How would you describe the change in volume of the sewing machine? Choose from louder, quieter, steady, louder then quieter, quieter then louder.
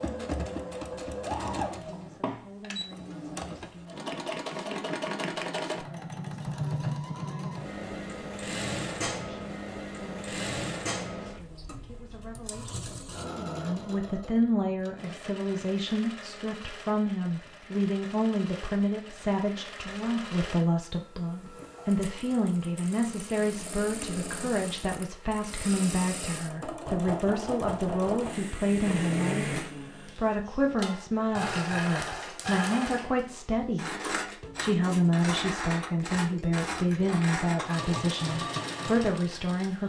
quieter then louder.